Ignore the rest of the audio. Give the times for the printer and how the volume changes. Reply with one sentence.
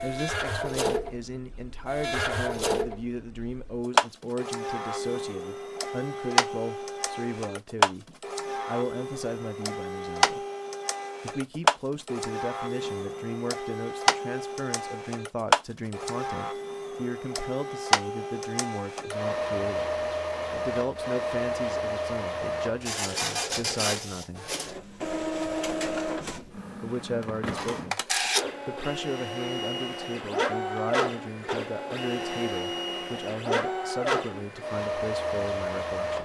The printer can be heard from 0.0 to 36.2 s, at a steady volume.